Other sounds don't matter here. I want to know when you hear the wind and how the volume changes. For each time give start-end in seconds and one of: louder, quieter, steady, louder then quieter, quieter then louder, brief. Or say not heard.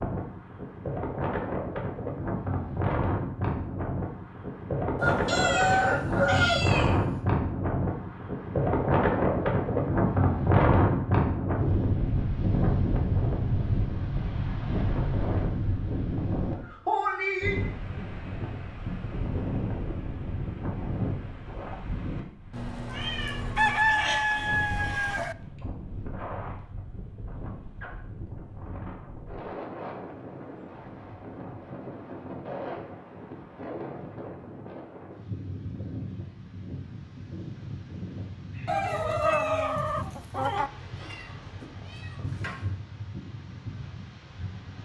0.0-44.7 quieter.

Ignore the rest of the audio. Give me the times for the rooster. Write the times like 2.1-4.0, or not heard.
5.0-6.7, 23.6-25.4, 38.6-40.7.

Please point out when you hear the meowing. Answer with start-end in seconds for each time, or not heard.
5.2-6.9, 22.5-23.8, 40.5-42.6.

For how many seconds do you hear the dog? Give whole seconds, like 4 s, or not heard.
not heard.